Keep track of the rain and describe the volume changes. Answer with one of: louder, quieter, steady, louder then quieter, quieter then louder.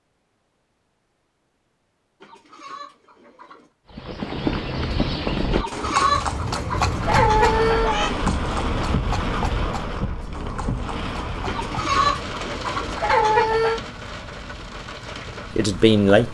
quieter.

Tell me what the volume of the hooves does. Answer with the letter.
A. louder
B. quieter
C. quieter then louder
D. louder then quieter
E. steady
B.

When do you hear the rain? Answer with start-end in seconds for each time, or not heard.
6.8-16.2.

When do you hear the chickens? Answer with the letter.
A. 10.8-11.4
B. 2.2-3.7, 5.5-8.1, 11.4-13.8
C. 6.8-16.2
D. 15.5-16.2
B.